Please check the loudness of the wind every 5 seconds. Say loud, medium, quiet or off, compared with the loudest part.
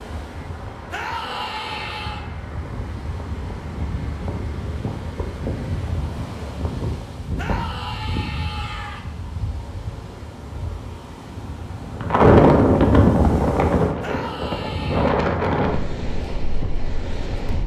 quiet, quiet, loud, medium.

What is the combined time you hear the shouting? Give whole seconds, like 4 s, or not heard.
4 s.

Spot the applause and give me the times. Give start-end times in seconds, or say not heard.
not heard.